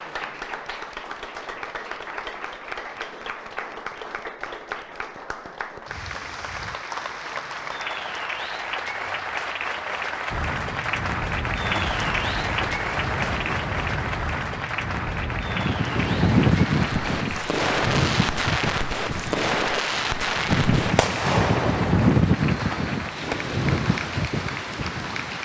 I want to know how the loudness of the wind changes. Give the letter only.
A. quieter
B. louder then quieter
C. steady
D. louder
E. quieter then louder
D.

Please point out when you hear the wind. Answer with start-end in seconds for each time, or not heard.
10.3-25.4.